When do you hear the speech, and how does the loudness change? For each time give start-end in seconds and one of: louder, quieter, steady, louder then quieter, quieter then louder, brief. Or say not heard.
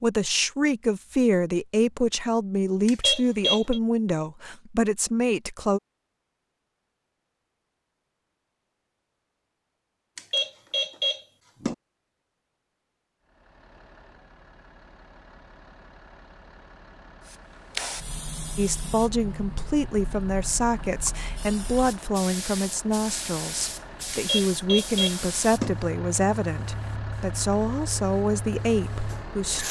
0.0-5.8 steady
18.6-29.6 steady.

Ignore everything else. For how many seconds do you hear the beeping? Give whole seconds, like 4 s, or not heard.
4 s.